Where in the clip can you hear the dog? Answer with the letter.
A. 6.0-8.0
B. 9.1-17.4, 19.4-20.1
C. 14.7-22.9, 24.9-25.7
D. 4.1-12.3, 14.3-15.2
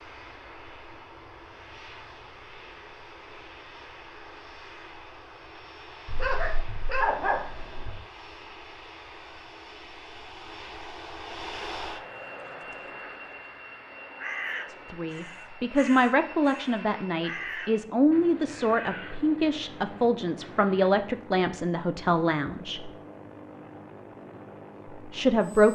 A.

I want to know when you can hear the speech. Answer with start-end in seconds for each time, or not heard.
14.7-22.9, 24.9-25.7.